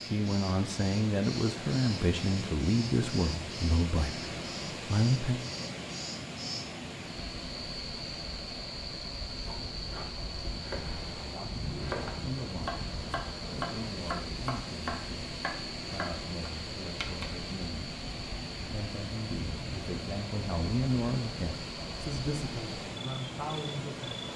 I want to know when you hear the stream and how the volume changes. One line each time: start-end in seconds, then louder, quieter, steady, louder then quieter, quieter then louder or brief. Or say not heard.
0.0-24.3 steady.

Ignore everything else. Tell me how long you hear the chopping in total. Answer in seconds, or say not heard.
8 s.